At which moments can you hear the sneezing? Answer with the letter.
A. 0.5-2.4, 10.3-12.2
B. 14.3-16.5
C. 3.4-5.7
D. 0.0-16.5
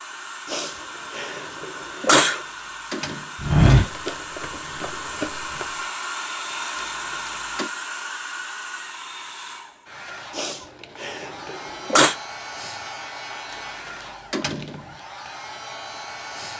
A.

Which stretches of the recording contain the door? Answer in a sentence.
You can hear the door from 2.4 to 3.4 s, from 6.8 to 7.7 s and from 13.5 to 15.0 s.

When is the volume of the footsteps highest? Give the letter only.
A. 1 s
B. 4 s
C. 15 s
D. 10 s
B.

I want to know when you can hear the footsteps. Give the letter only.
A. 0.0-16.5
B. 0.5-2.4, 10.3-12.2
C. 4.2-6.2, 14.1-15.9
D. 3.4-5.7
D.